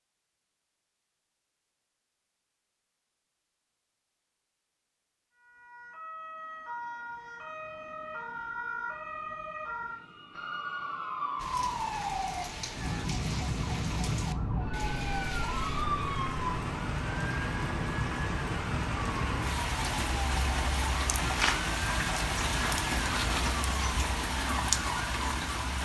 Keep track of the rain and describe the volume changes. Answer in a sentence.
The loudness of the rain goes up.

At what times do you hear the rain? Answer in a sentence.
The rain can be heard from 11.3 to 25.8 s.